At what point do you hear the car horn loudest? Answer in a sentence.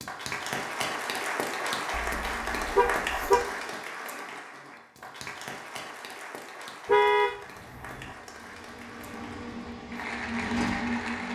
The loudest moment of the car horn is at 7 seconds.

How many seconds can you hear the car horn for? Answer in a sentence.
You can hear the car horn for 3 seconds altogether.